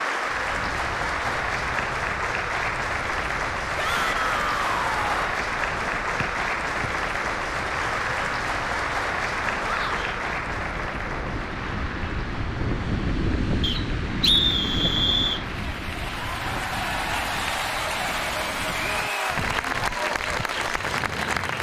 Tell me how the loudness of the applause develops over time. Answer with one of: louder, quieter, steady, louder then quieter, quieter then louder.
quieter then louder.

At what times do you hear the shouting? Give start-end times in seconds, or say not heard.
3.8-5.3, 9.6-10.2, 18.8-19.4.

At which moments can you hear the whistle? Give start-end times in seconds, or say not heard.
6.2-6.9, 13.6-15.4.